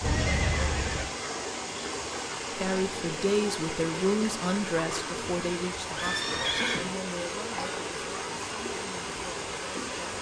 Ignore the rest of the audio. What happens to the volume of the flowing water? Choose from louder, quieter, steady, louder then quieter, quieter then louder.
steady.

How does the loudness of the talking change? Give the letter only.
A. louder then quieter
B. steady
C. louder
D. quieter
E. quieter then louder
D.